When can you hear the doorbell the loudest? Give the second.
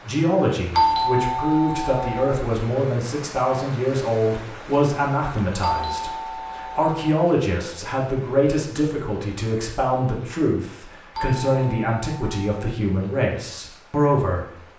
1 s.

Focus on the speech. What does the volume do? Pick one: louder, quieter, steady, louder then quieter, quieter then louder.
steady.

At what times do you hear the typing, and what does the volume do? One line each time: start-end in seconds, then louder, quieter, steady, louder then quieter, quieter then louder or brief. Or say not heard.
not heard.